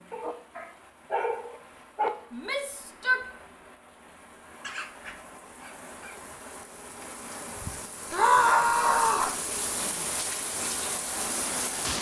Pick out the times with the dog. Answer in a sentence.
The dog can be heard from 0.1 to 2.1 s, from 4.6 to 6.2 s and from 8.3 to 10.1 s.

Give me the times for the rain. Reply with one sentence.
The rain can be heard from 0.0 to 11.9 s.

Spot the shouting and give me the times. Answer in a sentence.
The shouting can be heard from 2.3 to 3.2 s and from 8.1 to 9.3 s.